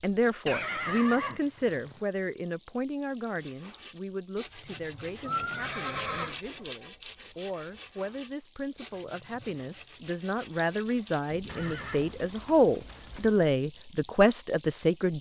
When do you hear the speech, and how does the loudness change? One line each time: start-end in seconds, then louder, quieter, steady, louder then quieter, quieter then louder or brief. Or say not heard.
0.0-15.1 quieter then louder.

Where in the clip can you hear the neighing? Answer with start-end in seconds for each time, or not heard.
0.5-2.0, 5.2-6.3, 11.4-13.4.